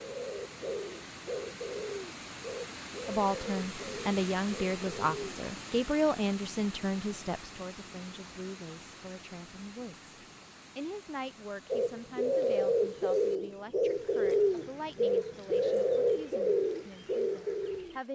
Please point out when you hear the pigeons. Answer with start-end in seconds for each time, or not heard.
0.0-5.3, 11.7-17.9.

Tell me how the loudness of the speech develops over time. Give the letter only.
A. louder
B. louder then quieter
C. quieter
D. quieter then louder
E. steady
C.